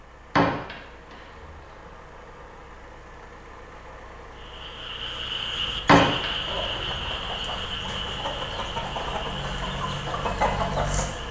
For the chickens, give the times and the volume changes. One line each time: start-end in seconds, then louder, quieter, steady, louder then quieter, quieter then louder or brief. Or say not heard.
5.7-11.1 louder.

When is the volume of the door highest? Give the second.
6 s.